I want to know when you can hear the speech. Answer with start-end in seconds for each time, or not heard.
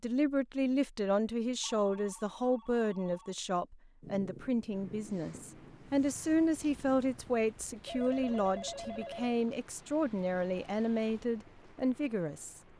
0.0-12.6.